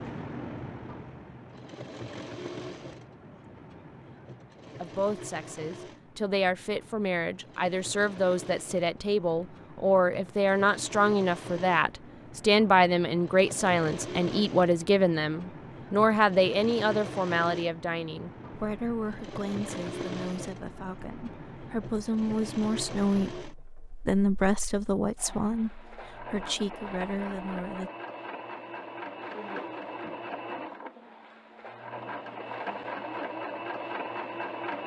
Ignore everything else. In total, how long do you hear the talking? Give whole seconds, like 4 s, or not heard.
23 s.